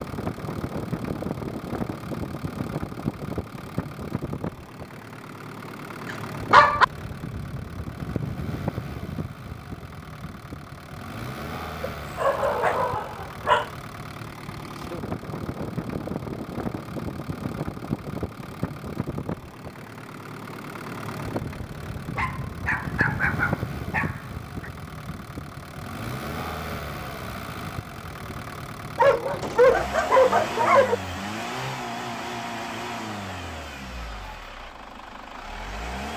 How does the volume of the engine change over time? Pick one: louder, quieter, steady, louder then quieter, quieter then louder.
steady.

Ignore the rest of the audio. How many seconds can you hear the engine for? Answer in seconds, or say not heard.
36 s.